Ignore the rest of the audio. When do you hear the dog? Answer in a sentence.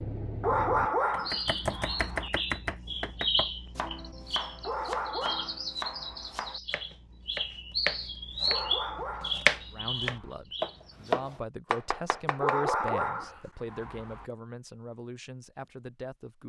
You can hear the dog from 0.4 to 2.3 s, from 4.6 to 6.5 s, from 8.4 to 10.3 s and from 12.4 to 14.2 s.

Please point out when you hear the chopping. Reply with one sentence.
You can hear the chopping from 1.1 to 12.9 s.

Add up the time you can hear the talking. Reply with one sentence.
You can hear the talking for 7 seconds altogether.